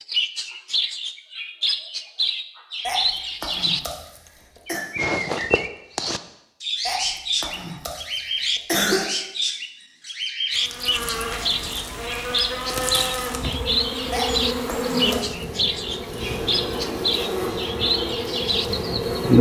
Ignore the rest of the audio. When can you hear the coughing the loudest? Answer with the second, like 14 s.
9 s.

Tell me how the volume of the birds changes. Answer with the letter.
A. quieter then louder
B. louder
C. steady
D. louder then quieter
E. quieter
C.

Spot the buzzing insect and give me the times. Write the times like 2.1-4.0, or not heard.
10.5-19.3.